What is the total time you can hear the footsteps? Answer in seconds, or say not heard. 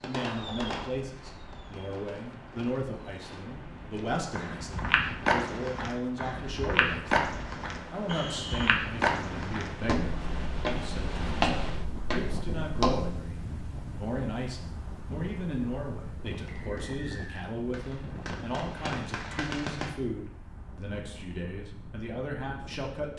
9 s.